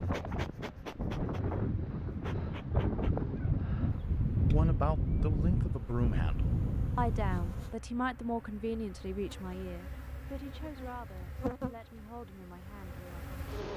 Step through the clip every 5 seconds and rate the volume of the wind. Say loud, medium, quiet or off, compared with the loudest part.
loud, loud, off.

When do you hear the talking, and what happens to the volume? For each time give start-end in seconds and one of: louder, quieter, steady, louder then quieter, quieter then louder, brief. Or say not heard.
4.3-13.6 quieter.